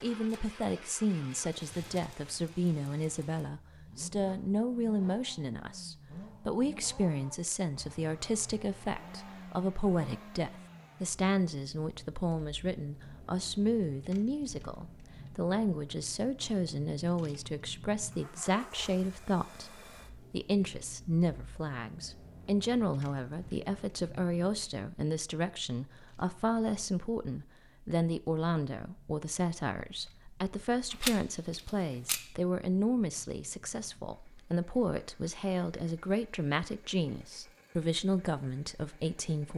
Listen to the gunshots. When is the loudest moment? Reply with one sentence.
The volume of the gunshots peaks at 31 seconds.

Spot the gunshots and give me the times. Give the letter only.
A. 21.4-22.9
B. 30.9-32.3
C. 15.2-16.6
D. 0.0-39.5
B.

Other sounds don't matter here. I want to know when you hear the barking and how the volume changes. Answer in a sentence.
The barking can't be heard in this clip.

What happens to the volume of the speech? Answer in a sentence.
The volume of the speech stays about the same.